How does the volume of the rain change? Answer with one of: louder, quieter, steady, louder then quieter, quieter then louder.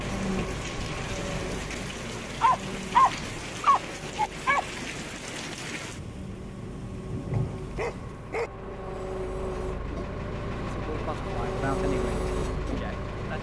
steady.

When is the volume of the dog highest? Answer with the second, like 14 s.
3 s.